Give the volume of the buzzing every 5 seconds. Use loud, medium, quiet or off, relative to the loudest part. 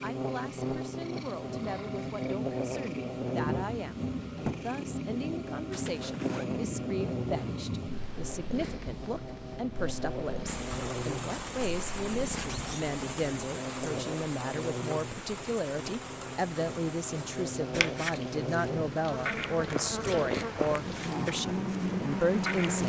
loud, medium, medium, medium, loud.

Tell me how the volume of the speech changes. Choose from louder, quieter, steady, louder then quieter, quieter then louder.
louder.